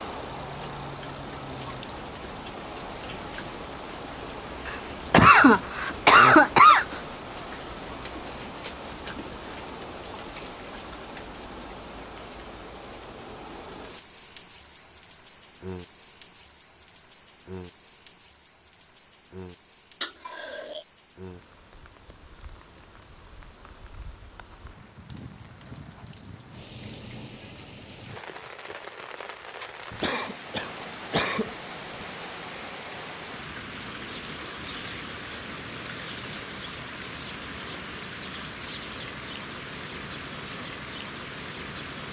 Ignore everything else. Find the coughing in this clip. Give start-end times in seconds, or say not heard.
4.7-6.8, 20.0-20.8, 30.0-31.6.